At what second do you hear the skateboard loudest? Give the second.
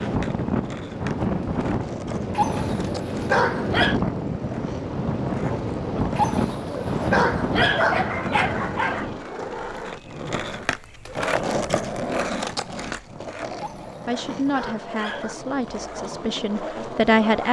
12 s.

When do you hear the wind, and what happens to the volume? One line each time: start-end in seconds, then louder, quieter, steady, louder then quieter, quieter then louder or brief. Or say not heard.
0.0-9.2 steady.